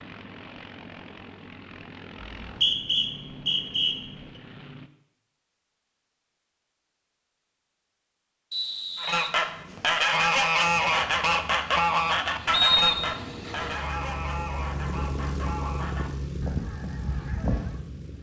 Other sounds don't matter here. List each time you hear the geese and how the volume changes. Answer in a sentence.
You can hear the geese from 8.9 to 17.9 s, getting quieter.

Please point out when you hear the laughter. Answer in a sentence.
You can't hear the laughter here.